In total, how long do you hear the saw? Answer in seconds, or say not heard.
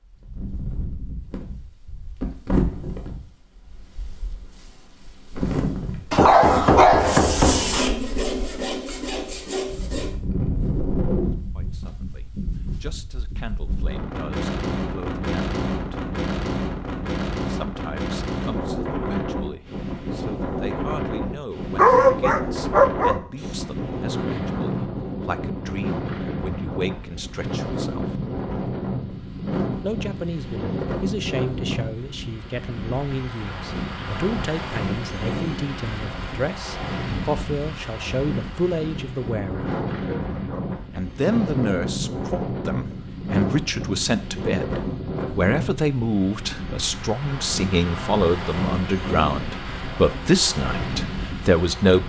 3 s.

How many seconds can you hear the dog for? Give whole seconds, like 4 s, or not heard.
4 s.